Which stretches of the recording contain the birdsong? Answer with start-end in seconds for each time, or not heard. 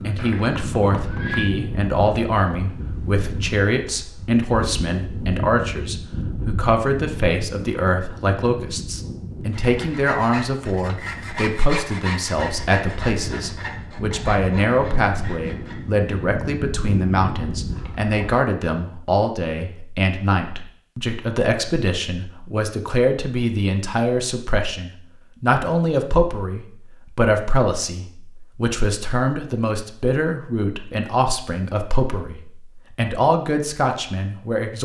not heard.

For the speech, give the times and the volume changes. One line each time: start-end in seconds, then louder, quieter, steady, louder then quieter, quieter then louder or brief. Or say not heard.
0.0-34.8 steady.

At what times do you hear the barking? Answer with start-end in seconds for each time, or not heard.
not heard.